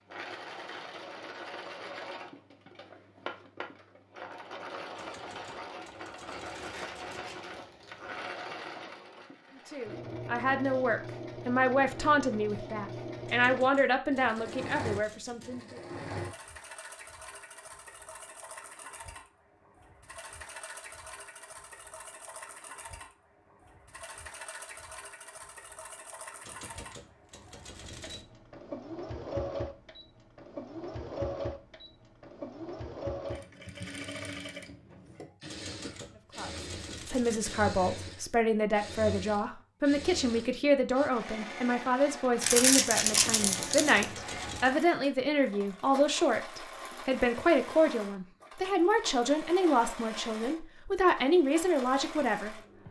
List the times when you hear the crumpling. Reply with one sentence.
You can hear the crumpling from 6.5 to 8.2 s and from 42.4 to 44.1 s.